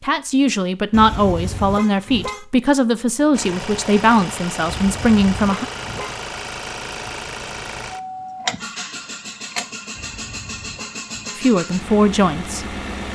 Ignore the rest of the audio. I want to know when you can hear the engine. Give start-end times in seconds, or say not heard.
3.3-13.0.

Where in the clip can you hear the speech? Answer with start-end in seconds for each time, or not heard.
0.0-5.7, 11.3-12.8.